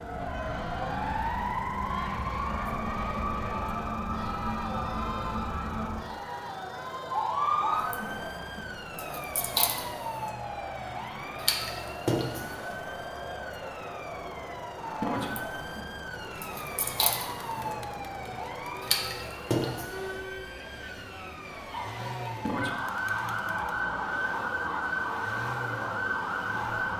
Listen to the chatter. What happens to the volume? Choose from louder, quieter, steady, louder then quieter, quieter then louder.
steady.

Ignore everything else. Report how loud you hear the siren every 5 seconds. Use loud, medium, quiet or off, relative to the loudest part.
loud, loud, medium, loud, loud, loud.